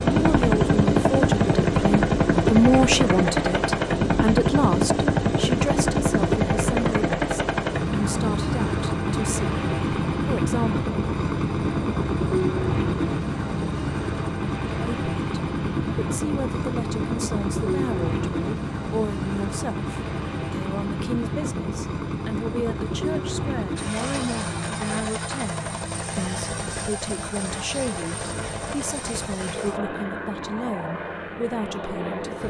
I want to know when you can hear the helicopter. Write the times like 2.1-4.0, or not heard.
0.0-32.4.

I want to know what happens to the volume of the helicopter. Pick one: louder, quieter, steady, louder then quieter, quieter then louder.
quieter.